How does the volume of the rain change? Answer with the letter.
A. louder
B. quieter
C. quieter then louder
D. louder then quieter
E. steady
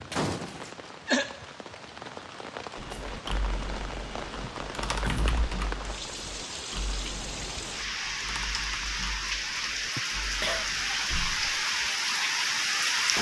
A.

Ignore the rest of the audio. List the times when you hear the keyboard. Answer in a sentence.
You can hear the keyboard from 2.8 to 11.2 s.